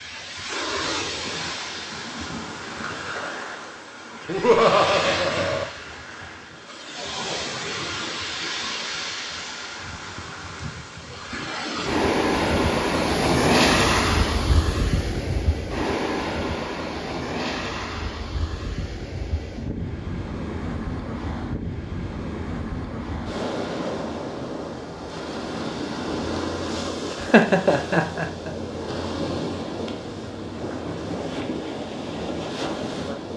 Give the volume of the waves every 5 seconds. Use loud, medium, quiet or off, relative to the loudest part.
medium, medium, loud, medium, medium, medium, medium.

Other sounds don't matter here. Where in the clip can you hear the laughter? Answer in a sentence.
The laughter can be heard from 4.2 to 5.7 s and from 27.2 to 28.5 s.